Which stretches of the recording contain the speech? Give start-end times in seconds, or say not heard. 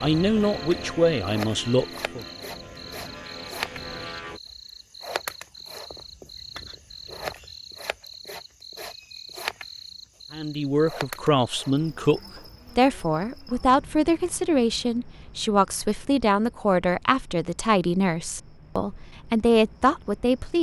0.0-2.2, 10.3-20.5.